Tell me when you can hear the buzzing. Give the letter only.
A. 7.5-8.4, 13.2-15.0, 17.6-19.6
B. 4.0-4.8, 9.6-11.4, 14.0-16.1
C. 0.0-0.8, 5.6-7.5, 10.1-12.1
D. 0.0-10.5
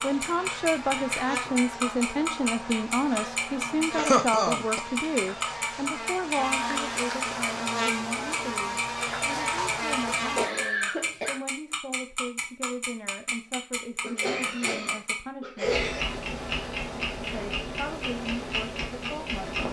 D.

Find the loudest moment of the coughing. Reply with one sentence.
The loudest moment of the coughing is at 4 seconds.